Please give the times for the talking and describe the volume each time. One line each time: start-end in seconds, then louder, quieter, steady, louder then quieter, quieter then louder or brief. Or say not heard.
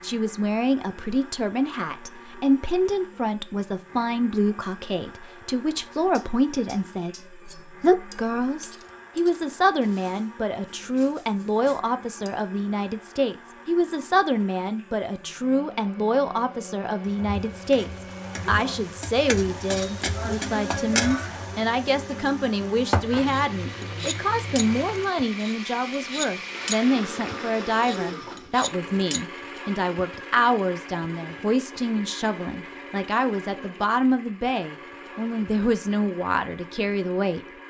0.0-37.5 steady.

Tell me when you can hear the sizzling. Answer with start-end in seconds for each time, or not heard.
17.0-28.4.